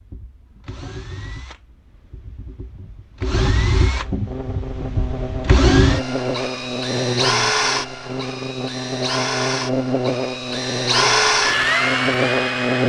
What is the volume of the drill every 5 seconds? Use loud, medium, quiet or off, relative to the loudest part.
medium, loud, loud.